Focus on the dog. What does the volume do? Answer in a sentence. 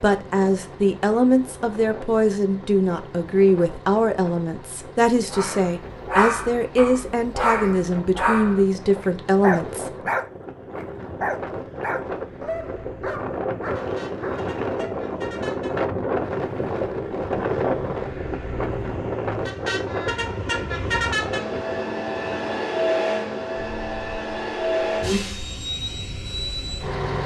The loudness of the dog goes down.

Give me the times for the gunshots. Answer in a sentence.
You can't hear the gunshots here.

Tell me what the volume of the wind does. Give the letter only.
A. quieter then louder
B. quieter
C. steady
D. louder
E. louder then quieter
E.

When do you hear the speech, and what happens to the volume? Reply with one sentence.
The speech can be heard from 0.0 to 9.9 s, at a steady volume.